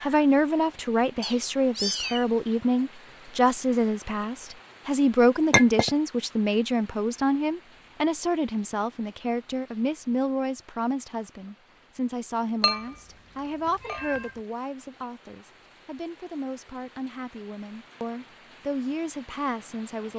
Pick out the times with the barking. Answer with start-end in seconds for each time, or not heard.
not heard.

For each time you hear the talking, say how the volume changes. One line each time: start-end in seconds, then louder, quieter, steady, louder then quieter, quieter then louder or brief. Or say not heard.
0.0-20.1 quieter.